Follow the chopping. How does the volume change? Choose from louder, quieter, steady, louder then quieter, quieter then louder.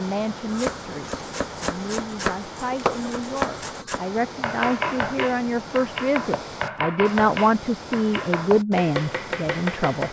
steady.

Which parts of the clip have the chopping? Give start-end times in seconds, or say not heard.
0.5-10.0.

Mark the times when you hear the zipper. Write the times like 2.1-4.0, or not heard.
not heard.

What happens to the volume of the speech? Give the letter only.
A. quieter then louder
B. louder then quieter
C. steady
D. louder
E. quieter
D.